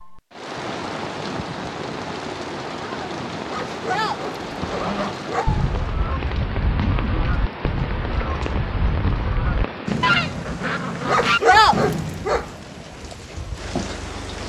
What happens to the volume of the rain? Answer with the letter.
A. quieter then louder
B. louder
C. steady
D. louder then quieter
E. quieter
C.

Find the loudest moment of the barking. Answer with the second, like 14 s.
12 s.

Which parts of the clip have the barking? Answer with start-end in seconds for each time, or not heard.
3.5-5.5, 11.1-12.4.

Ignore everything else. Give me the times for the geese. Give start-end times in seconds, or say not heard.
4.4-11.8.